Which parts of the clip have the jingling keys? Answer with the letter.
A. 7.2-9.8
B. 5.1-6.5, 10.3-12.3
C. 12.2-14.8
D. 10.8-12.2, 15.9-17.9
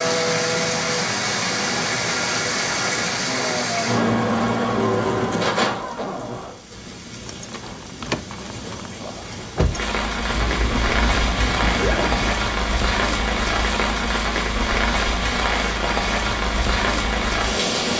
A.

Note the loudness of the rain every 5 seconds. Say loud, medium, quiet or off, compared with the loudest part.
loud, medium, loud, loud.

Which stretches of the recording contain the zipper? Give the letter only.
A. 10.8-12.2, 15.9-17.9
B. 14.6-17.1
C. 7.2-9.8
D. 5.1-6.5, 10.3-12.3
D.